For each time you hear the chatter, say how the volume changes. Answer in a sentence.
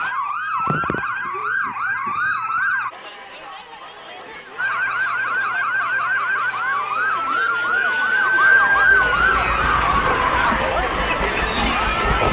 The chatter can be heard from 2.9 to 12.2 s, getting louder.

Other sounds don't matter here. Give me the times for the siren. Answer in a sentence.
You can hear the siren from 0.0 to 2.9 s and from 4.5 to 10.6 s.